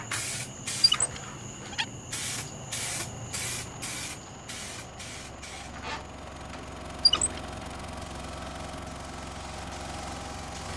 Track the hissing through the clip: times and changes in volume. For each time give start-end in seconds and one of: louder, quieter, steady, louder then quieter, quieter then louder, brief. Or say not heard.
0.0-10.7 quieter.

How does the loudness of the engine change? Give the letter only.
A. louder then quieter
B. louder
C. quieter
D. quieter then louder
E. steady
B.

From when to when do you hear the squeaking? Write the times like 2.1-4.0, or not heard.
0.8-1.9, 7.0-7.4.